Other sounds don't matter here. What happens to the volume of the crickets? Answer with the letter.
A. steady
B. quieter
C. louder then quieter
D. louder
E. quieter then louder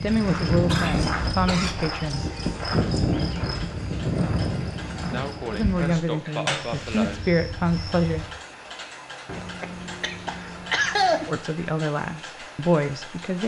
B.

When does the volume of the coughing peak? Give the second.
11 s.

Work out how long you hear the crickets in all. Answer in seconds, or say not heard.
8 s.